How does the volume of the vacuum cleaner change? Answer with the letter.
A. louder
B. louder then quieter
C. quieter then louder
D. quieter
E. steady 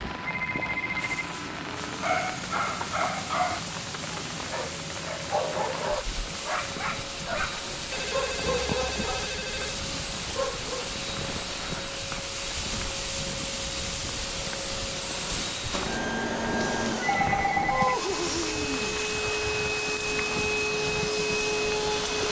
A.